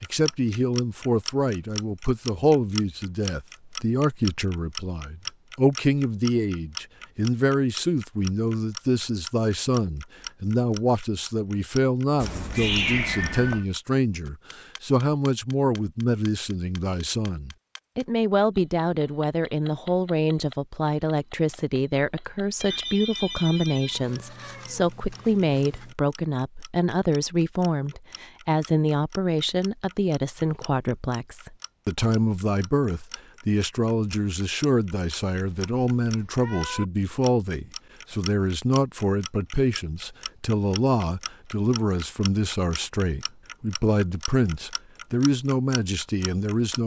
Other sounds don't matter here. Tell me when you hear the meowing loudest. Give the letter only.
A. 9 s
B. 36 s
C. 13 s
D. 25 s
C.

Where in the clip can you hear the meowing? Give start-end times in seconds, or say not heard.
12.2-13.7, 23.9-25.9, 35.3-36.9.